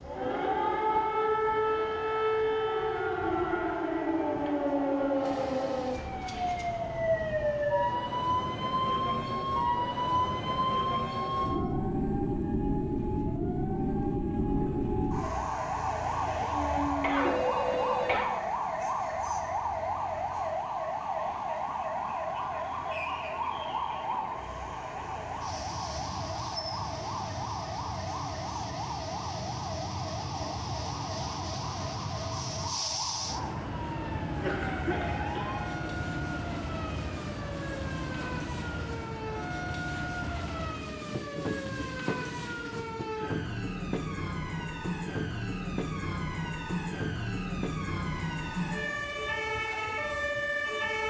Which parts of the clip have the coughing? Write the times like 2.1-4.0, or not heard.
17.0-18.3, 34.3-35.5.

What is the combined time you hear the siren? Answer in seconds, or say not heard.
51 s.